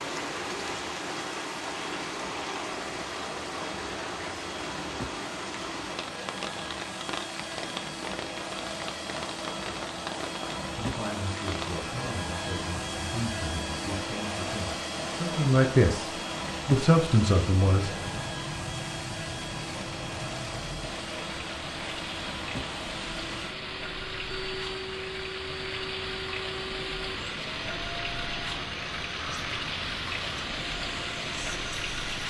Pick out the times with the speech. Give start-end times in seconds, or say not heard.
10.8-18.1.